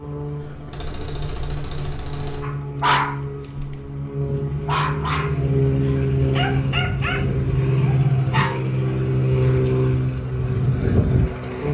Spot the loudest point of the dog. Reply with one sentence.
The loudest moment of the dog is at 3 seconds.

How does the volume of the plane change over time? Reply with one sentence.
The loudness of the plane goes up.